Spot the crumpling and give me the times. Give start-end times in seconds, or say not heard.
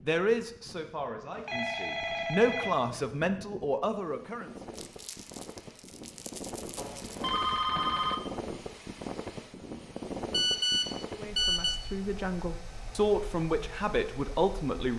4.7-7.3.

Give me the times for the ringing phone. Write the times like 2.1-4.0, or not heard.
1.4-3.0, 6.8-8.2, 10.3-11.8.